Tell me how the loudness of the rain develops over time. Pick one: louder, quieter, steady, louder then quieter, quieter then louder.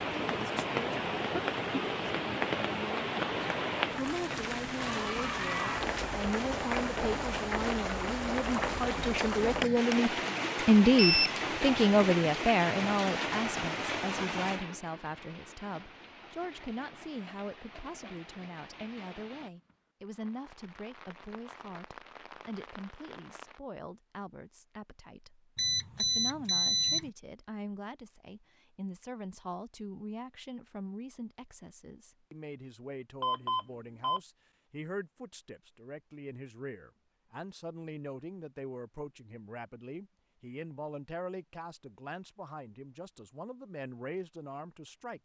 quieter.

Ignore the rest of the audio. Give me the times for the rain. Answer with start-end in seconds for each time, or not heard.
0.0-23.6.